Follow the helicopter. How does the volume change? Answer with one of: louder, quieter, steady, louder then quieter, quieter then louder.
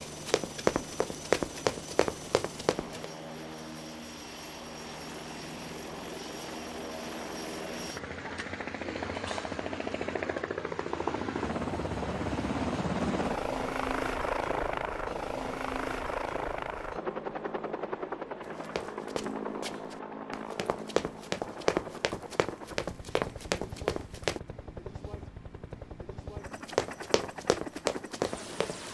louder then quieter.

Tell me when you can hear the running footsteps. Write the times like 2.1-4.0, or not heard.
0.0-3.0, 18.4-24.4, 26.5-28.8.